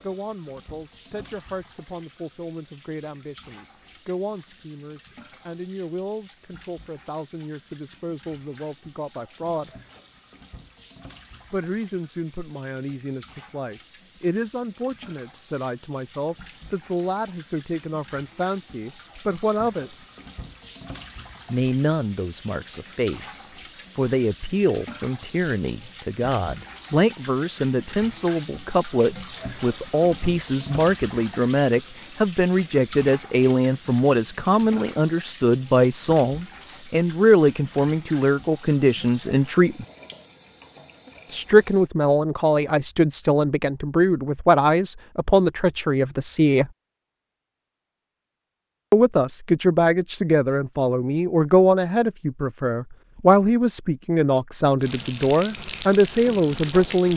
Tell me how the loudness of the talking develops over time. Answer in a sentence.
The loudness of the talking goes up.